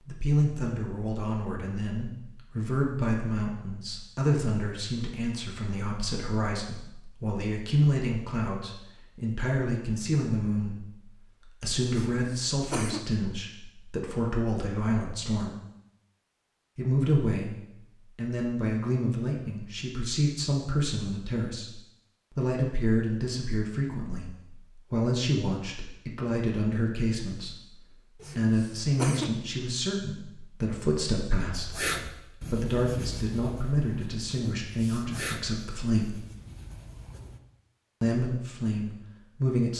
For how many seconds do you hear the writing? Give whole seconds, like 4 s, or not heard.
6 s.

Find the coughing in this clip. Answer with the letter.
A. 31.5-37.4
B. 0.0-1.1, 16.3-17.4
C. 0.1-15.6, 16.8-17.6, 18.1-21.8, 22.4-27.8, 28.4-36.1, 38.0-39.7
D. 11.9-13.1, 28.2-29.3
D.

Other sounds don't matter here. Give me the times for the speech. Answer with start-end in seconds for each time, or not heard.
0.1-15.6, 16.8-17.6, 18.1-21.8, 22.4-27.8, 28.4-36.1, 38.0-39.7.